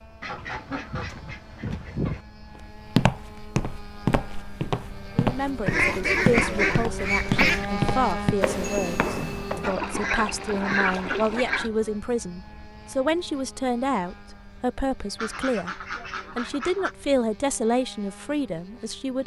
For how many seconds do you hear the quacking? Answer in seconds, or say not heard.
8 s.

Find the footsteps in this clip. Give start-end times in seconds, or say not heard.
2.5-9.7.